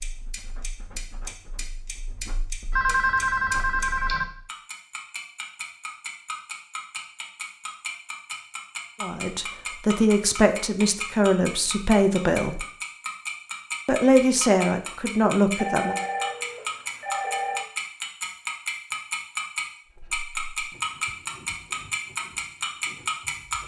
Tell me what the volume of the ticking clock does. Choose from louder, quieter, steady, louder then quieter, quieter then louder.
louder.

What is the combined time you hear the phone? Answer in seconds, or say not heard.
4 s.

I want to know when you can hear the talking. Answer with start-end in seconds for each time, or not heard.
9.0-12.7, 13.8-16.0.